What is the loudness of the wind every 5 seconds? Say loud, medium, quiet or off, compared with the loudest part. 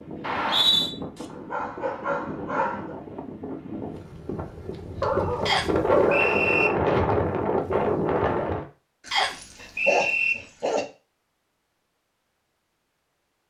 quiet, loud, off.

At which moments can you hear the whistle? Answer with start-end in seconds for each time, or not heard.
0.2-0.9, 5.5-6.7, 9.1-10.3.